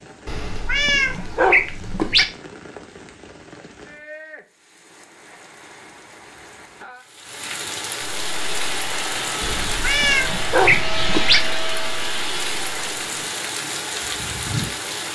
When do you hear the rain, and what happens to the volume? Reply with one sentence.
The rain can be heard from 0.0 to 15.1 s, getting louder.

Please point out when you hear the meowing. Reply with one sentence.
The meowing can be heard from 0.2 to 2.2 s and from 9.4 to 11.4 s.